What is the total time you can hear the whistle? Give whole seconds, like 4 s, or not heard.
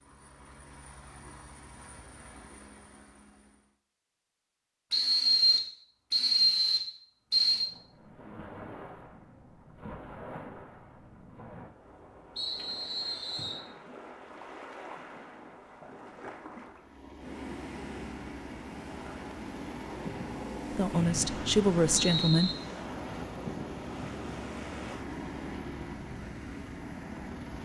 6 s.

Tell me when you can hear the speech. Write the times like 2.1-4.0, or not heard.
20.7-22.5.